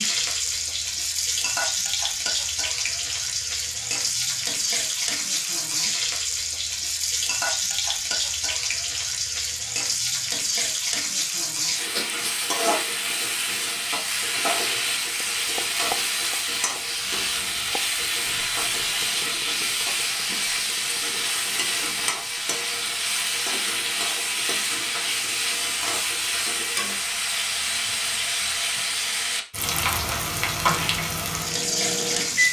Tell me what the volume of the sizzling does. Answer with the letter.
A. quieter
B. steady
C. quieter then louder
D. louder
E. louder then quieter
B.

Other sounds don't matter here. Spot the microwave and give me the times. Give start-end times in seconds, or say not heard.
30.9-32.4.